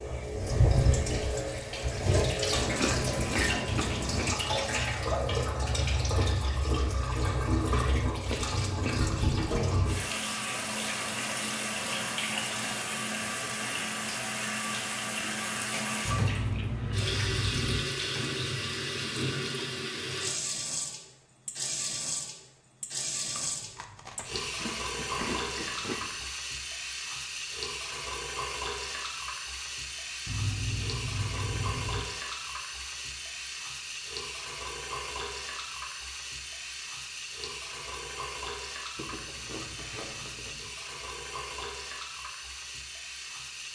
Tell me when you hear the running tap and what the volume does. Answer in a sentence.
You can hear the running tap from 0.0 to 43.7 s, getting quieter.